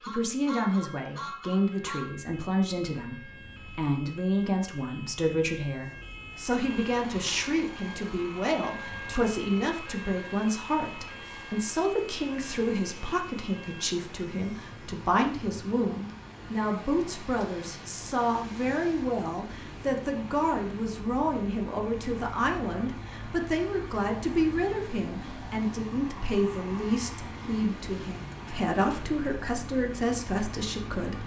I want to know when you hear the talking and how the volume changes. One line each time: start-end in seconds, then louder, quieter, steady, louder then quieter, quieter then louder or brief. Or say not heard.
0.1-31.2 steady.